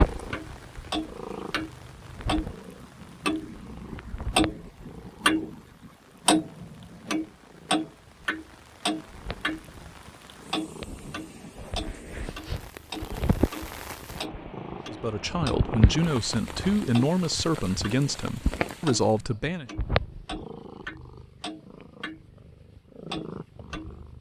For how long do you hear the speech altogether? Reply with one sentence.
The speech can be heard for 5 seconds in total.